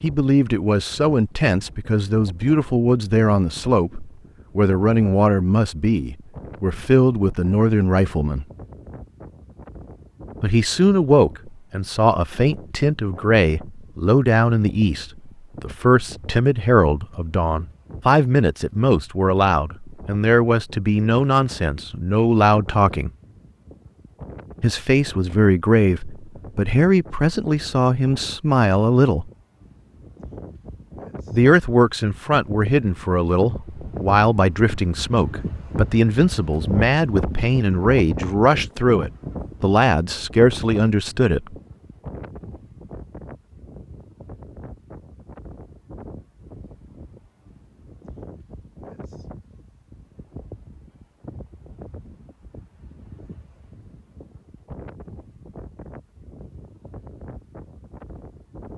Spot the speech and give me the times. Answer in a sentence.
The speech can be heard from 0.0 to 8.4 s, from 10.4 to 23.1 s, from 24.6 to 29.3 s and from 31.3 to 41.5 s.